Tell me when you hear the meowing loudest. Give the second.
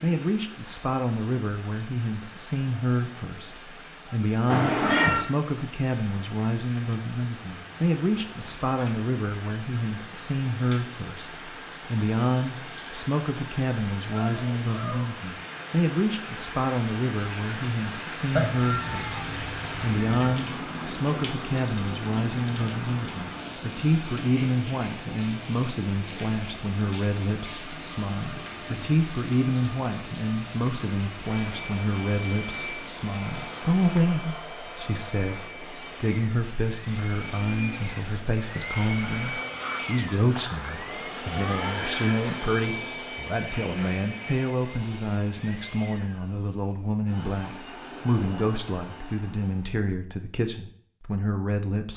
5 s.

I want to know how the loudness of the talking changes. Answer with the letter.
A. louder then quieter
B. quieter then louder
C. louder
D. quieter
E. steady
E.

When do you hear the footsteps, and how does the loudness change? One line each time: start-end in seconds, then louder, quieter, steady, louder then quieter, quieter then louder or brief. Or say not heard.
not heard.